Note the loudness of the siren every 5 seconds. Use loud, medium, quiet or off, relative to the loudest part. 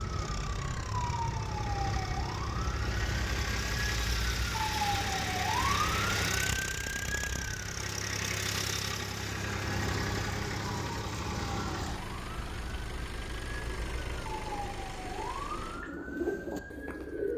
loud, loud, medium, medium.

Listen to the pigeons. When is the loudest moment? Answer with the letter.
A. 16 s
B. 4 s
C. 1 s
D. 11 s
A.